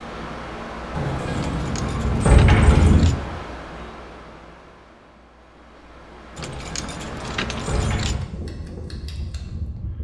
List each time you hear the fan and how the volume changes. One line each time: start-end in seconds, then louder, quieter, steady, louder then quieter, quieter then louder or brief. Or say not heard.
0.0-9.9 quieter then louder.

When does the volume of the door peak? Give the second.
2 s.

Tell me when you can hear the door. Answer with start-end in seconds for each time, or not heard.
0.9-3.0, 6.3-8.2.